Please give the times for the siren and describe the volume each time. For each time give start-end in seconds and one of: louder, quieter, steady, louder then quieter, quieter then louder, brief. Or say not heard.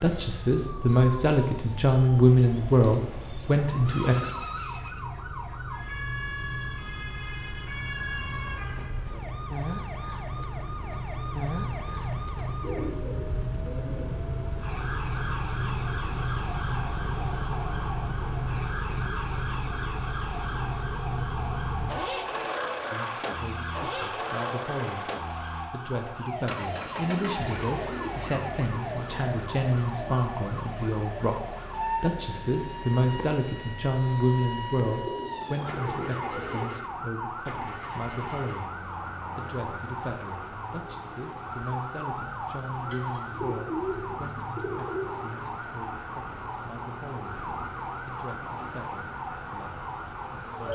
0.0-50.6 steady.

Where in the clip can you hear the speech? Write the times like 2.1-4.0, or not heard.
0.0-4.3, 22.9-25.1, 25.7-31.4, 32.0-38.8, 39.4-47.5, 48.0-50.6.